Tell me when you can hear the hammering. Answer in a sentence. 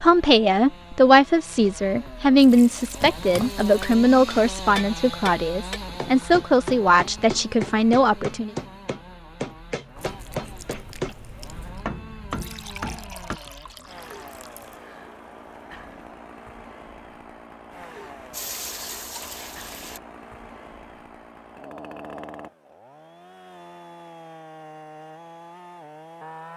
You can hear the hammering from 3.0 to 13.4 s.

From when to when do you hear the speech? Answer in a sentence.
The speech can be heard from 0.0 to 8.5 s.